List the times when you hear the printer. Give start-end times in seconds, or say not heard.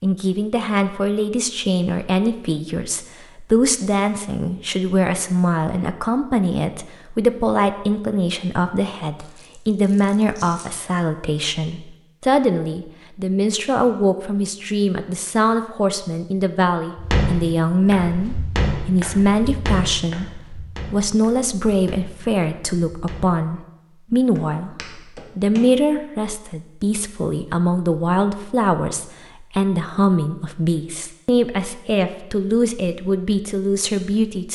not heard.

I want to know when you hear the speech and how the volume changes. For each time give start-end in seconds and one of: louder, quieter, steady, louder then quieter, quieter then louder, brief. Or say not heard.
0.0-34.5 steady.